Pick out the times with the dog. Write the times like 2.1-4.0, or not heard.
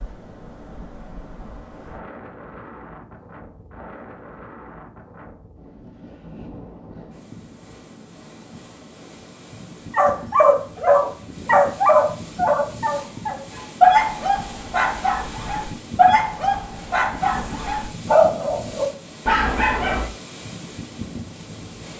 9.9-20.1.